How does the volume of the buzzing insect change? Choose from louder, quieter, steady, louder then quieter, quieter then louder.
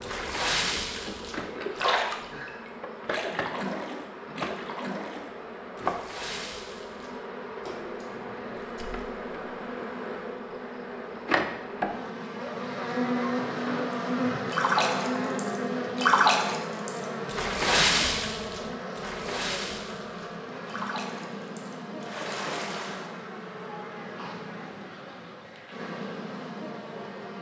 louder then quieter.